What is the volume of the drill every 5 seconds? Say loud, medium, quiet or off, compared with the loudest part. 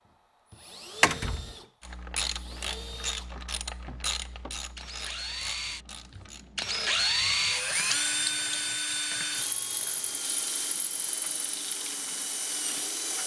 quiet, loud, medium.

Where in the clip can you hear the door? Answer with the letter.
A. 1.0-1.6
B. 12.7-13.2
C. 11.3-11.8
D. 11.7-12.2
A.